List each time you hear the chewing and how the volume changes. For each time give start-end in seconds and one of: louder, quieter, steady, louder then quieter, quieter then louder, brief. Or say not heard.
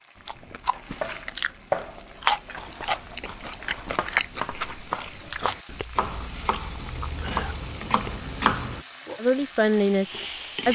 0.1-8.3 louder then quieter.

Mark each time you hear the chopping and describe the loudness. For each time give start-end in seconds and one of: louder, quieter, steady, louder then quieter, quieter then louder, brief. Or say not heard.
0.6-8.8 quieter then louder.